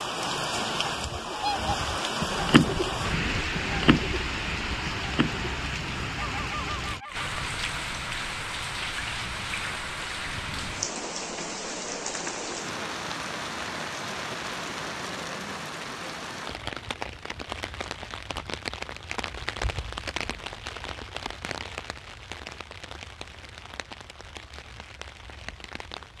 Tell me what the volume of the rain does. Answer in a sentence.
The loudness of the rain goes down.